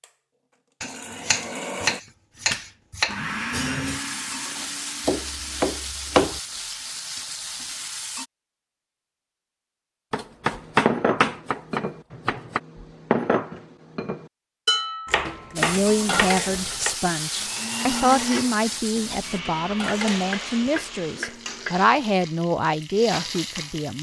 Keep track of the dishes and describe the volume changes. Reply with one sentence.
The volume of the dishes goes down.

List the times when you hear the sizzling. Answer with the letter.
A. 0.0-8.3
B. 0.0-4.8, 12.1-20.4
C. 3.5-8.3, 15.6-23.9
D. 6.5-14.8
C.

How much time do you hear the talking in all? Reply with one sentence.
The talking can be heard for 8 seconds in total.